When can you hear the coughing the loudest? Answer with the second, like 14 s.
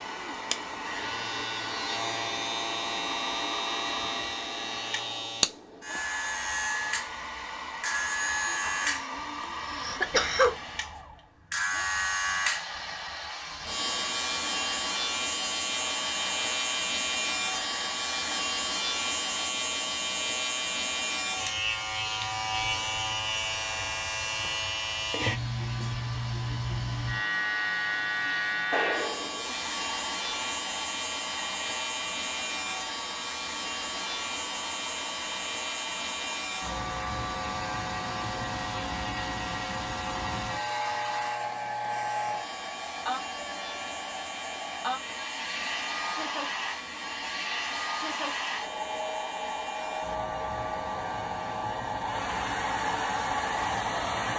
10 s.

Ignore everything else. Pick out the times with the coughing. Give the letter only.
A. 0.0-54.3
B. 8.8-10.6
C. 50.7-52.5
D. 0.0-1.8
B.